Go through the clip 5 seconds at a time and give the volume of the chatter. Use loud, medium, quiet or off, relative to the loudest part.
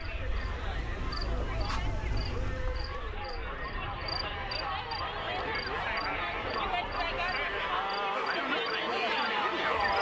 medium, loud.